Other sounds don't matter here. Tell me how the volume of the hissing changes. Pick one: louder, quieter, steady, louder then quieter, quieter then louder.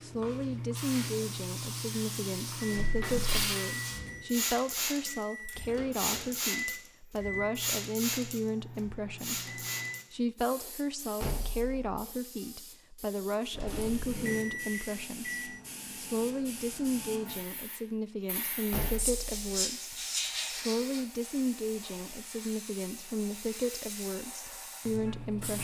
quieter then louder.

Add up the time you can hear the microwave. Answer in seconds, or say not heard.
12 s.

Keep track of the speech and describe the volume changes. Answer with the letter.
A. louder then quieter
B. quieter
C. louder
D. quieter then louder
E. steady
E.